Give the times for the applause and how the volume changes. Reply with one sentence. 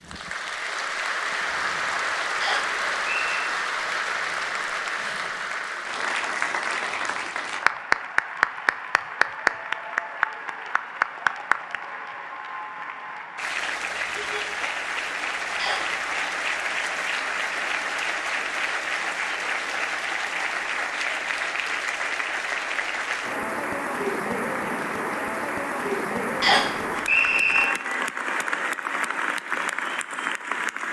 You can hear the applause from 0.0 to 30.8 s, at a steady volume.